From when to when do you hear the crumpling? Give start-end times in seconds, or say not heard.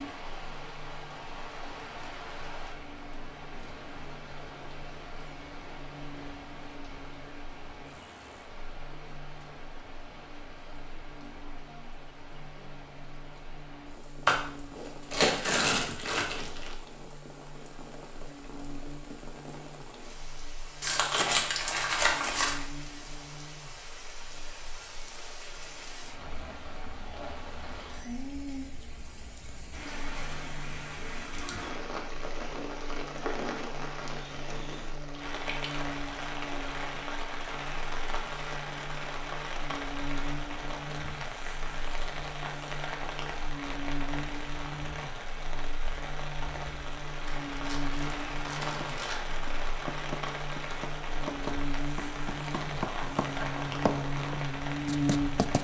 14.2-16.8, 20.8-22.6, 47.2-49.1.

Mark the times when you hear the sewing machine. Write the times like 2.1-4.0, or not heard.
not heard.